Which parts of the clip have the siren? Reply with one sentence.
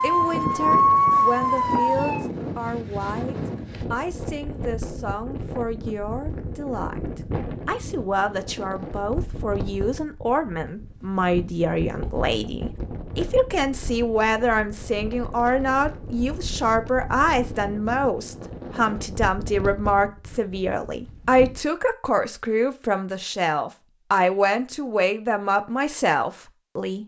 You can hear the siren from 0.0 to 2.2 s.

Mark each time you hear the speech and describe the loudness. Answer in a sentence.
You can hear the speech from 0.0 to 27.0 s, getting louder.